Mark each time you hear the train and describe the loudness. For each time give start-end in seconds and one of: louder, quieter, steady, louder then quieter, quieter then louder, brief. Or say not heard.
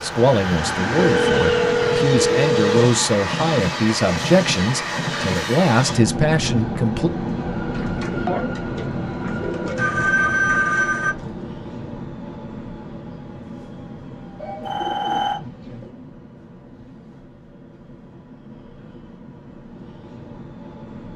0.0-21.1 quieter.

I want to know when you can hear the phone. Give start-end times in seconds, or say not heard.
0.9-2.7, 9.8-11.2, 14.7-15.4.